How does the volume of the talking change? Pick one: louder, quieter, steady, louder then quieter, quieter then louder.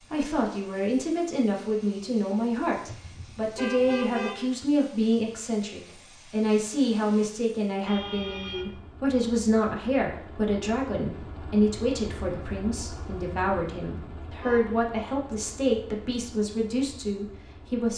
steady.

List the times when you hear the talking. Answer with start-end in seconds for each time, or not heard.
0.1-17.9.